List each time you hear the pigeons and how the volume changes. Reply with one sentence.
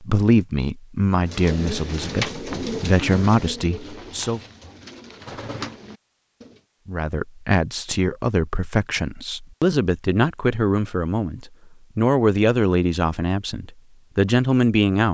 The pigeons can be heard from 1.2 to 6.6 s, getting quieter then louder.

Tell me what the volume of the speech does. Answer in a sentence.
The volume of the speech stays about the same.